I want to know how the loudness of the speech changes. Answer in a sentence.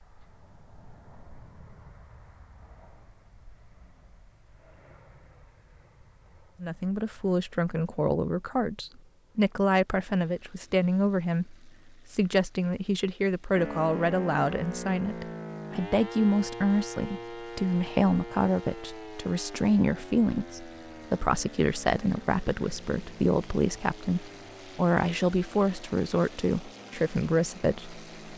The volume of the speech stays about the same.